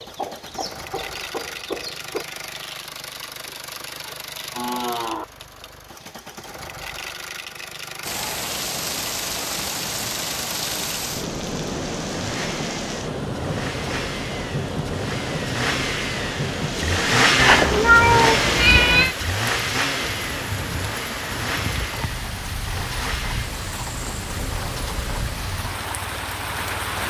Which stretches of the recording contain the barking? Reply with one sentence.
You can't hear the barking here.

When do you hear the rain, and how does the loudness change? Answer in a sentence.
The rain can be heard from 8.0 to 27.0 s, at a steady volume.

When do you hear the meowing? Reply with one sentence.
You can hear the meowing from 17.4 to 19.1 s.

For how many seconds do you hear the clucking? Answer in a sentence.
You can hear the clucking for 2 seconds altogether.